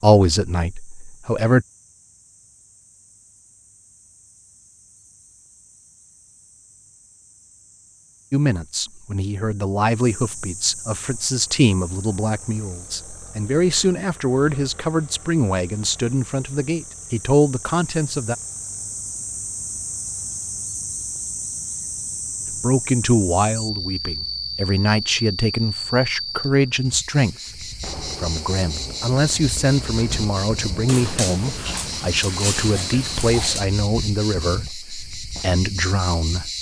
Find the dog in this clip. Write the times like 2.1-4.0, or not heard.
30.9-33.6.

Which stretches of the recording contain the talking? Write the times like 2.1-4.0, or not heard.
0.0-1.6, 8.3-18.4, 22.5-36.5.